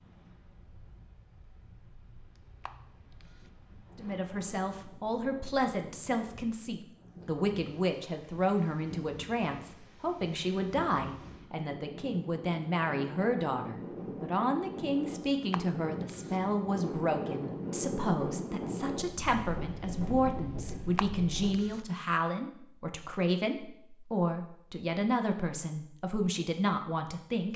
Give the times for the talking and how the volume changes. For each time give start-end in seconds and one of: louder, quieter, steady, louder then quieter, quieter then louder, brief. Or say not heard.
4.0-27.5 steady.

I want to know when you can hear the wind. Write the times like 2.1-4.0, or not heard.
0.0-21.8.